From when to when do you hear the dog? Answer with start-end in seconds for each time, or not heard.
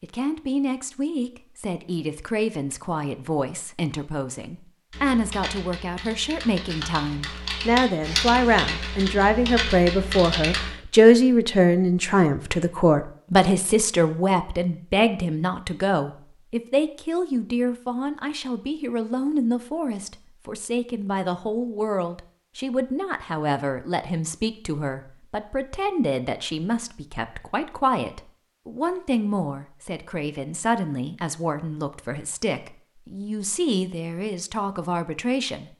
not heard.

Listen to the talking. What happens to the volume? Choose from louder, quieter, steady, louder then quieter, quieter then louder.
louder then quieter.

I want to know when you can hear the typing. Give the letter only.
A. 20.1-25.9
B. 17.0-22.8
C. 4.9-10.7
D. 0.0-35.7
C.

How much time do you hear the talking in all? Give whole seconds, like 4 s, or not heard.
36 s.